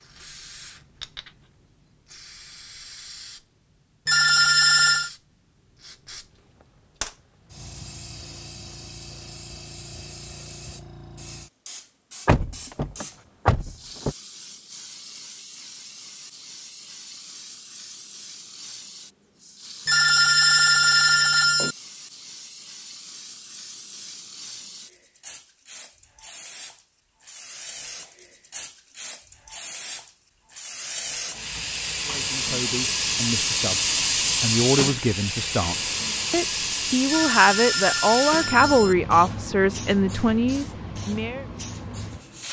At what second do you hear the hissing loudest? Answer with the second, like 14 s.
34 s.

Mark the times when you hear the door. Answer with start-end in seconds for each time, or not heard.
12.2-14.2.